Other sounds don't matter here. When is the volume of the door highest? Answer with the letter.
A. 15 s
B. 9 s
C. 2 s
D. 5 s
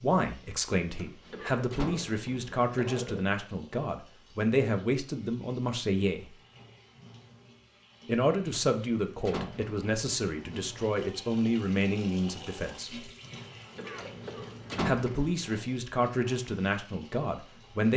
A.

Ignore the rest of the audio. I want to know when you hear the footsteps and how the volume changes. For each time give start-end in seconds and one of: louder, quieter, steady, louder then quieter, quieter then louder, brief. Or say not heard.
not heard.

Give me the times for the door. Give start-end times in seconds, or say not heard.
0.9-2.1, 8.5-9.8, 13.9-15.3.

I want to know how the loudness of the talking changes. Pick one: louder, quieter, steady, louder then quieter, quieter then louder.
steady.